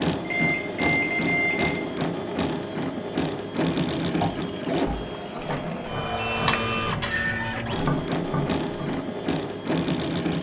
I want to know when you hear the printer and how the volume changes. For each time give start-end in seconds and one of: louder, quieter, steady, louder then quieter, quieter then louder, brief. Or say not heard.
0.0-10.3 steady.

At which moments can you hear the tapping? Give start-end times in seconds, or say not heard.
4.2-9.0.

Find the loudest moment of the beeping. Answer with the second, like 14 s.
1 s.